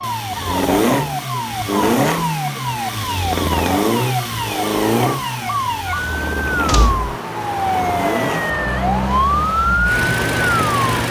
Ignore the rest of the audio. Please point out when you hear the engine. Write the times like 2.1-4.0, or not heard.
0.0-11.0.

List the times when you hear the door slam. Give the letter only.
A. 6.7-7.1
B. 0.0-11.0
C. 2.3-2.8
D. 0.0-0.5
A.